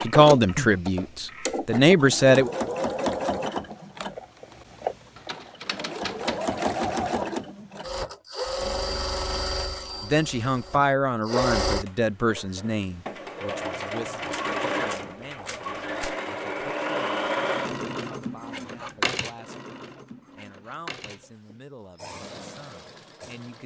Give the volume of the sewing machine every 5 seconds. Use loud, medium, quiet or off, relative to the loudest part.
loud, loud, loud, loud, quiet.